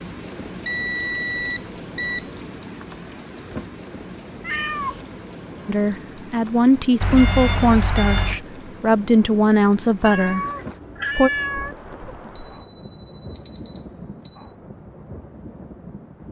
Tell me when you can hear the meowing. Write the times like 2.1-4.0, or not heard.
4.4-5.0, 10.0-11.8.